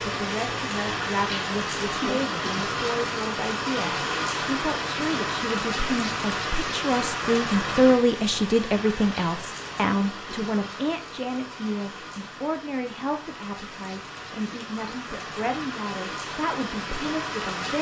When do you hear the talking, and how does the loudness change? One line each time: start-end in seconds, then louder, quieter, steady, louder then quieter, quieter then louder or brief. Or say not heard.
0.0-17.7 louder then quieter.